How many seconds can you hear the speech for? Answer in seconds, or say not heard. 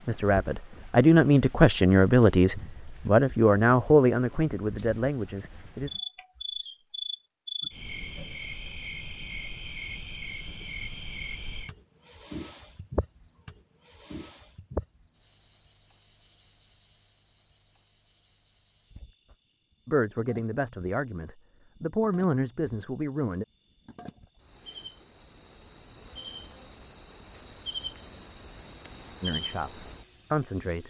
11 s.